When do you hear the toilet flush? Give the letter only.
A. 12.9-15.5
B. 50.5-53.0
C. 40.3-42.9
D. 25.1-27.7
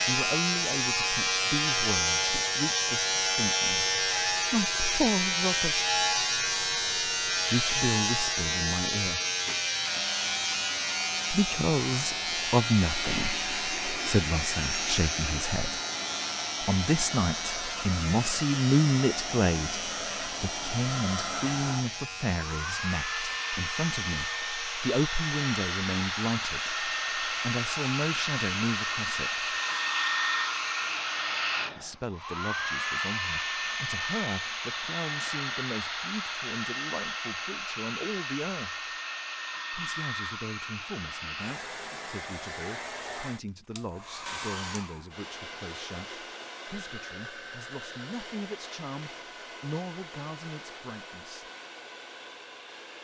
A.